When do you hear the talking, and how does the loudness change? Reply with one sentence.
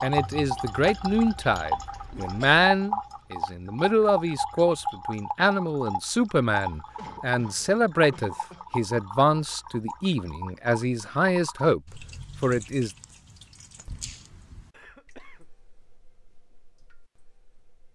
You can hear the talking from 0.0 to 12.9 s, at a steady volume.